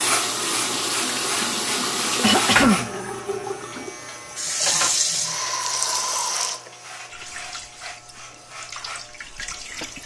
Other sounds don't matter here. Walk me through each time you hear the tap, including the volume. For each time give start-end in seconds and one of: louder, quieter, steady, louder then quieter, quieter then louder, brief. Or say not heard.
0.0-10.0 quieter.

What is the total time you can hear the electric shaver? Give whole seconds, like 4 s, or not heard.
10 s.